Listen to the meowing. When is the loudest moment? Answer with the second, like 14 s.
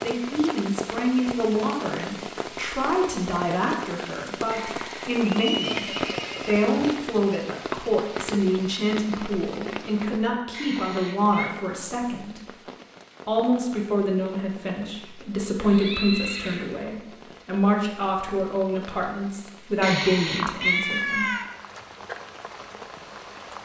21 s.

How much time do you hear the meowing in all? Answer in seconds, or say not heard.
3 s.